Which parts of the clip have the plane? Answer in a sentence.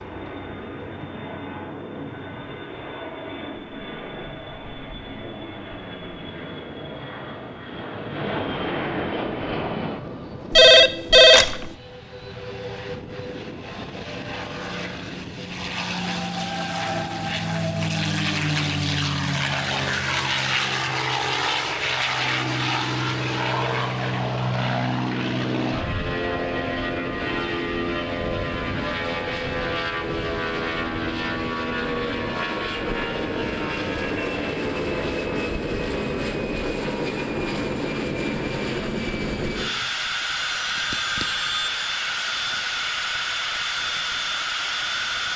You can hear the plane from 0.0 to 45.3 s.